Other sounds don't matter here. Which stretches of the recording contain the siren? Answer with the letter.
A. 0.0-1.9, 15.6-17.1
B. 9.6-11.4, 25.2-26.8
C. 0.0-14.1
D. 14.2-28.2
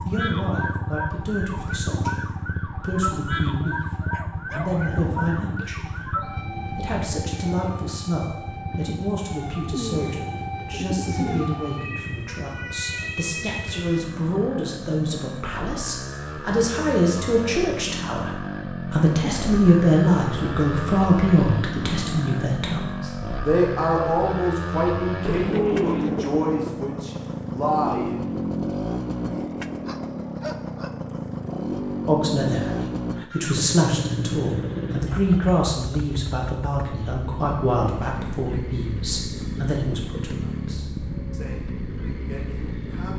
C.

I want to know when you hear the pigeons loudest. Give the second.
26 s.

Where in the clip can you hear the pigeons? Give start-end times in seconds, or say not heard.
9.6-11.4, 25.2-26.8.